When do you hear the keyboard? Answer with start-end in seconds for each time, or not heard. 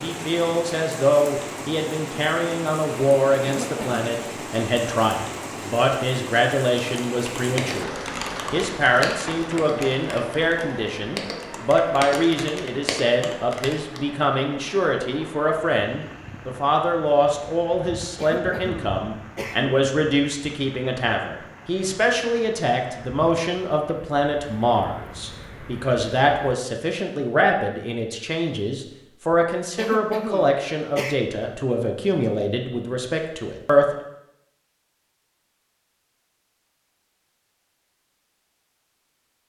6.8-14.0.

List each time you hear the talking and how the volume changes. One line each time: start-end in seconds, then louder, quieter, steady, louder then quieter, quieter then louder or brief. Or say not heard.
0.0-34.0 steady.